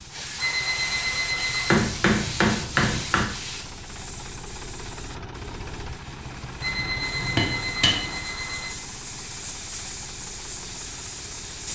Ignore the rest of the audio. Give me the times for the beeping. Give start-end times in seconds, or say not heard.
0.3-1.9, 6.6-8.8.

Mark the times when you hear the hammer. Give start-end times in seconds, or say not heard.
1.4-3.2, 6.8-8.2.